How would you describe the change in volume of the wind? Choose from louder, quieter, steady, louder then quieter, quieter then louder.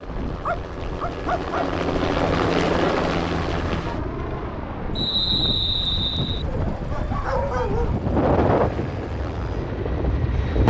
louder.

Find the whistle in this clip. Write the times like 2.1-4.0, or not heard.
5.0-6.5.